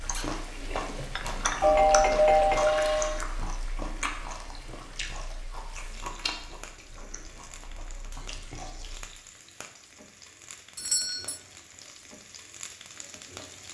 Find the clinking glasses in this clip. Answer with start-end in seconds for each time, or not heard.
0.7-1.6.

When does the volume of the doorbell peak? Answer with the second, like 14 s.
2 s.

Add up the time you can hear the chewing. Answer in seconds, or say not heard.
9 s.